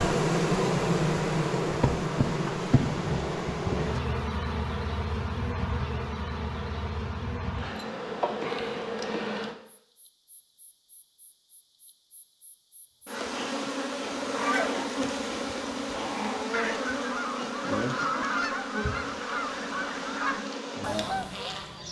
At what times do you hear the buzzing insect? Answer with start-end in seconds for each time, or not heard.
0.0-21.8.